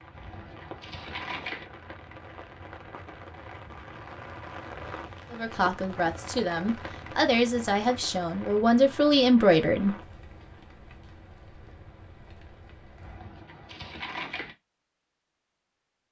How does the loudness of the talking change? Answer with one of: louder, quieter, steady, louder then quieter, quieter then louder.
louder.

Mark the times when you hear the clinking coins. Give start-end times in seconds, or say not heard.
0.1-1.6, 13.0-14.6.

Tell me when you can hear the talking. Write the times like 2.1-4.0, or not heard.
5.3-9.9.